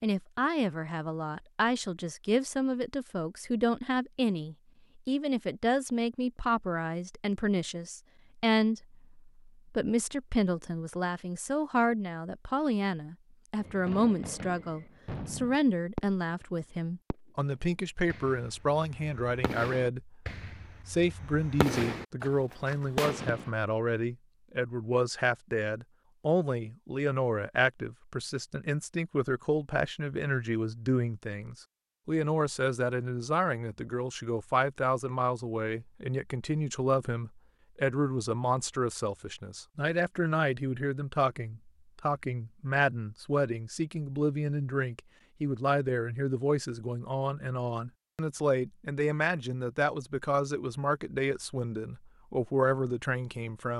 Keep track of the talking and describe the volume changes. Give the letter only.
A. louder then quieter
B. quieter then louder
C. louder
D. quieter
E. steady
E.